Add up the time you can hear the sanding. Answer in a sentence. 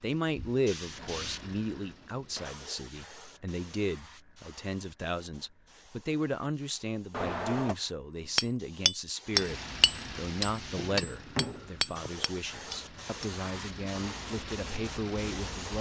The sanding can't be heard in this clip.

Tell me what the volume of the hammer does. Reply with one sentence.
The loudness of the hammer goes down.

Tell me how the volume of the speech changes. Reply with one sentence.
The loudness of the speech stays about the same.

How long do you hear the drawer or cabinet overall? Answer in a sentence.
The drawer or cabinet can be heard for 3 seconds in total.